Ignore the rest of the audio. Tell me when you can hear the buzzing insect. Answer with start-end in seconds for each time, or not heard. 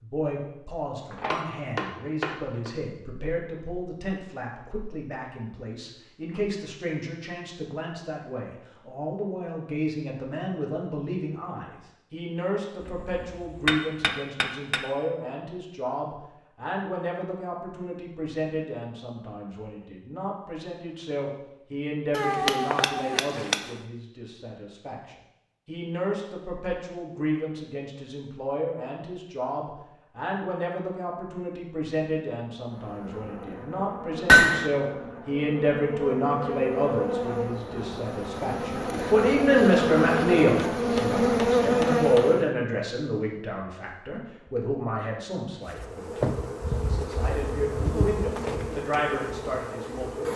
32.6-42.5, 45.6-50.3.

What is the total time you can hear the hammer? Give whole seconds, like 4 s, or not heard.
7 s.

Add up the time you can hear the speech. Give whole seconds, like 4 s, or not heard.
50 s.